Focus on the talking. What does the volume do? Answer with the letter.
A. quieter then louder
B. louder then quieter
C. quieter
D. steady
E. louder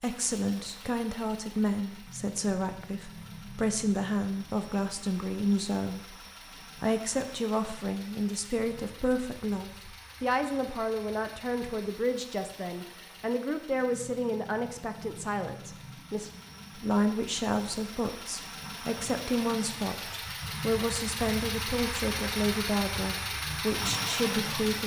D.